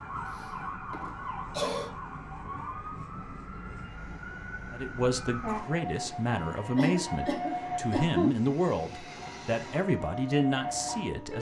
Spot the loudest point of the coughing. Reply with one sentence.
The volume of the coughing peaks at 8 seconds.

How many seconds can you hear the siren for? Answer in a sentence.
You can hear the siren for 11 seconds altogether.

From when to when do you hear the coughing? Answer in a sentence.
The coughing can be heard from 0.3 to 1.9 s and from 6.8 to 8.4 s.